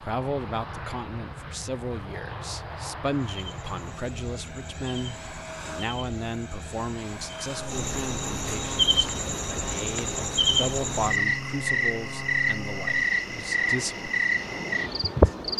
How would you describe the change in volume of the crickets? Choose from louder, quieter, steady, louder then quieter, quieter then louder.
louder.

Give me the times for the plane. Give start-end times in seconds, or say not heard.
0.0-15.5.